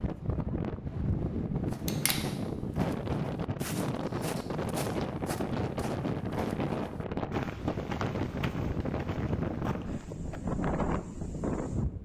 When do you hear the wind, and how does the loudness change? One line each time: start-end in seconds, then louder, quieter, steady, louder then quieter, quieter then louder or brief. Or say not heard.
0.0-12.0 steady.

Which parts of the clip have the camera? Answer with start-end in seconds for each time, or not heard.
1.6-2.1.